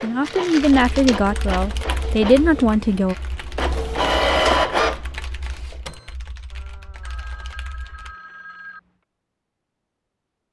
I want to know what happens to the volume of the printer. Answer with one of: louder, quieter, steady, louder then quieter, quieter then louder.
quieter then louder.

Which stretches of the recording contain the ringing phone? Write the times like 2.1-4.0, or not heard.
6.5-8.9.